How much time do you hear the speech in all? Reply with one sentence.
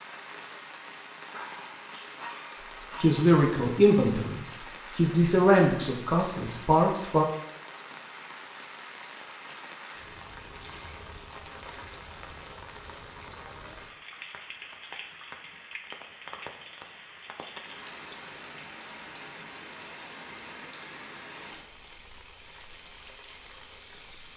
The speech can be heard for 4 seconds in total.